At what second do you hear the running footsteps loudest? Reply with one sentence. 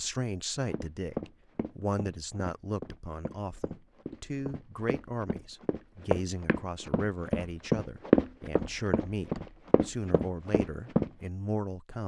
The volume of the running footsteps peaks at 8 seconds.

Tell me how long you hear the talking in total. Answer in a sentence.
The talking can be heard for 12 seconds in total.